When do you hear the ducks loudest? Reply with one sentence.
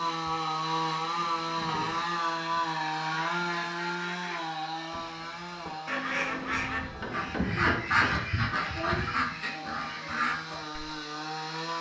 The loudest moment of the ducks is at 8 seconds.